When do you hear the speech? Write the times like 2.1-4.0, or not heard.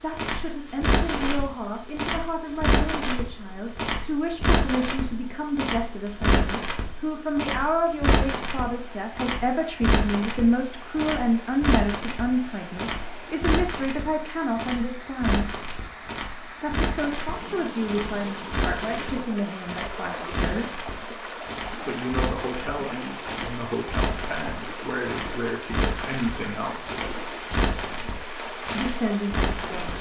0.0-15.5, 16.6-20.8, 21.9-27.0, 28.8-29.9.